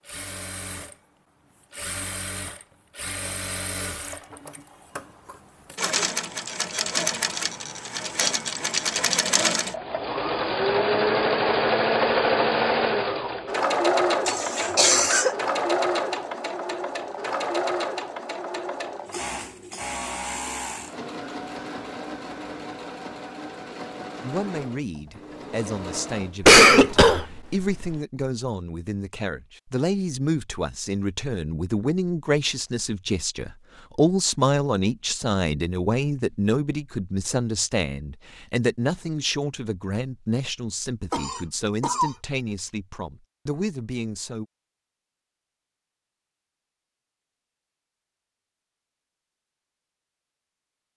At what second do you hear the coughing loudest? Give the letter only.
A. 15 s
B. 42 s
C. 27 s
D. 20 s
C.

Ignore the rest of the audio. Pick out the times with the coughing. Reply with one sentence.
The coughing can be heard from 14.2 to 15.3 s, from 26.4 to 27.9 s and from 41.1 to 42.1 s.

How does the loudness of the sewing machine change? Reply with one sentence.
The volume of the sewing machine goes up, then down.